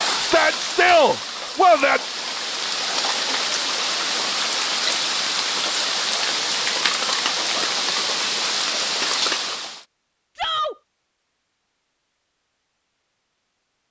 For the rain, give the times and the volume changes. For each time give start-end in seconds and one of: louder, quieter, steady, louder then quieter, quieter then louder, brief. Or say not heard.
0.0-9.8 louder.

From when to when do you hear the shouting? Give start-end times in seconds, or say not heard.
0.1-2.0, 10.3-10.8.